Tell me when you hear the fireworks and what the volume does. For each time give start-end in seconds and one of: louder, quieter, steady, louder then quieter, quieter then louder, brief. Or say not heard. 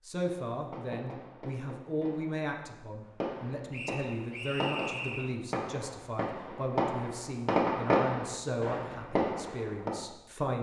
0.2-9.9 louder.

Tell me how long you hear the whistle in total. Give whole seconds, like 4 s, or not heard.
2 s.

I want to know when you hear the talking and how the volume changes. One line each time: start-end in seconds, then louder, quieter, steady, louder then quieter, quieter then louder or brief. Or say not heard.
0.0-10.5 steady.